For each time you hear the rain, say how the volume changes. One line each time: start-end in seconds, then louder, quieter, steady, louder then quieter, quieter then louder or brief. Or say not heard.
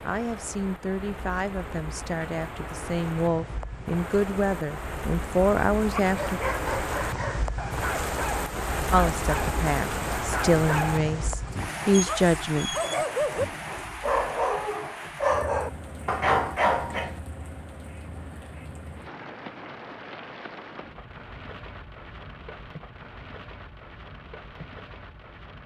0.0-25.6 louder then quieter.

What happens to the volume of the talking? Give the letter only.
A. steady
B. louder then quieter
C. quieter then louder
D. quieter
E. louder
E.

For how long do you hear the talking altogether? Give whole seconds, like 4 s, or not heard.
10 s.